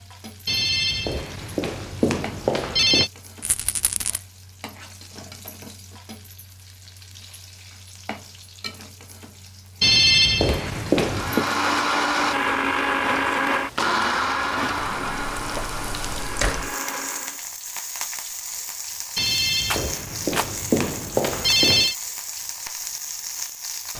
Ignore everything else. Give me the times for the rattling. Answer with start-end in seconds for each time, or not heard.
3.4-4.2, 19.6-20.5.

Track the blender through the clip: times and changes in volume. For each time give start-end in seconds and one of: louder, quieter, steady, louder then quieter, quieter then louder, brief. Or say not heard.
11.1-17.4 quieter.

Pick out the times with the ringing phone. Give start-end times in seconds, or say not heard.
0.5-3.1, 9.8-11.5, 19.1-21.9.